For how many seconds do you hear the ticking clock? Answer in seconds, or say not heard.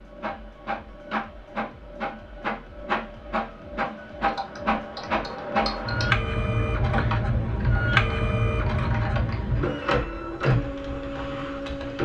not heard.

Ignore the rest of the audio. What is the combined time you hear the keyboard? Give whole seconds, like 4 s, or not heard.
8 s.